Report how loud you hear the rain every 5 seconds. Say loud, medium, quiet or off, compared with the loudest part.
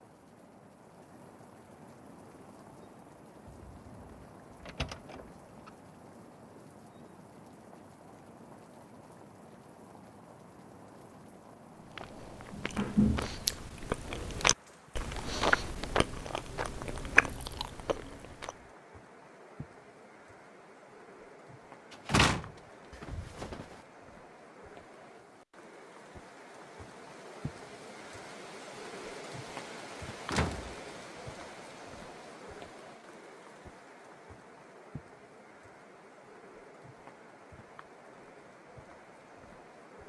medium, medium, medium, medium, medium, loud, loud, medium.